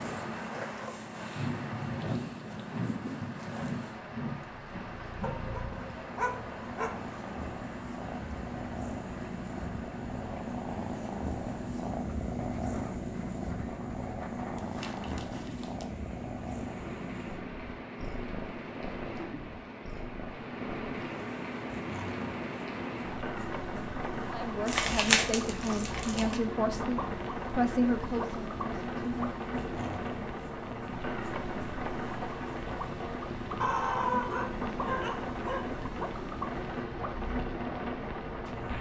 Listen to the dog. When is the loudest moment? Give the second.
34 s.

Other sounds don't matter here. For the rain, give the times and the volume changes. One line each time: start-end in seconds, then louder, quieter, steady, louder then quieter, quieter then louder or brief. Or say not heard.
0.0-38.7 quieter then louder.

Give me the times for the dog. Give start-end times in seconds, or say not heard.
5.2-7.0, 33.6-35.8.